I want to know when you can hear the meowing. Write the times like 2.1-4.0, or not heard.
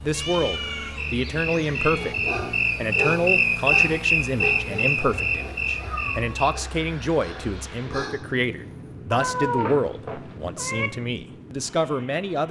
0.1-2.1, 5.7-6.3, 9.1-10.9.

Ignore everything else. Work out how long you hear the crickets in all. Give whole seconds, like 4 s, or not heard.
6 s.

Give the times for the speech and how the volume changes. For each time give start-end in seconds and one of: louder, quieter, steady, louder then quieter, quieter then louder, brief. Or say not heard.
0.0-12.4 steady.